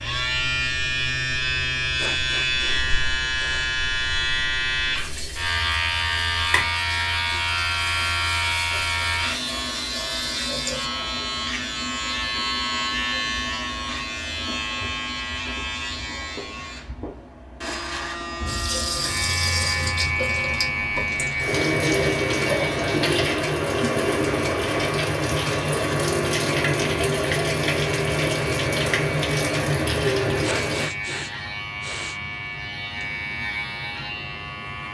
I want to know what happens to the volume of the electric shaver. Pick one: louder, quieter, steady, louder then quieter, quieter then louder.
quieter.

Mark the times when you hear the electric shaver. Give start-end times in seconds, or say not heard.
0.0-34.8.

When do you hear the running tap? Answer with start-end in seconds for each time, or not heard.
5.0-10.9, 18.4-30.9.